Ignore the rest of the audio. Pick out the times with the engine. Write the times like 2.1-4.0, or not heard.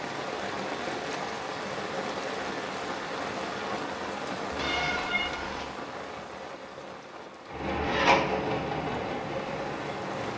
7.5-10.3.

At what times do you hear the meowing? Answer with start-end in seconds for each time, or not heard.
4.5-5.7.